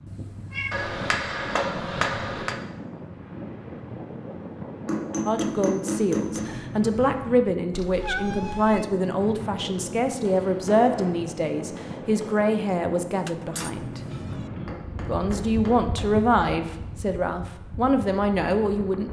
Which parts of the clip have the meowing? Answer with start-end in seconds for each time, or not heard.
0.1-1.0, 7.7-8.9, 13.2-14.5.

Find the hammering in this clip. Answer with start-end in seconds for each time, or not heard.
0.7-2.6, 4.8-6.5, 10.1-12.5, 14.7-16.1.